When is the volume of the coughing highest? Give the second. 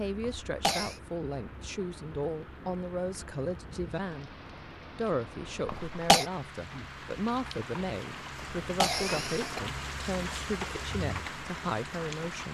6 s.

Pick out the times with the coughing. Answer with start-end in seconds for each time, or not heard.
0.2-0.9, 5.7-6.2, 8.3-9.6.